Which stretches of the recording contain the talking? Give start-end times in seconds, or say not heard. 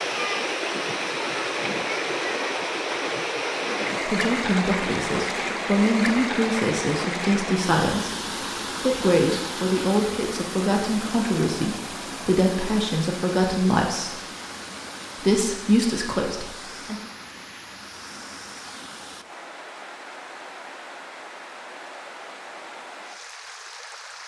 4.0-8.2, 8.8-14.2, 15.2-16.9.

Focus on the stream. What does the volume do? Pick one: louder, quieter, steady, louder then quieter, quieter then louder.
quieter.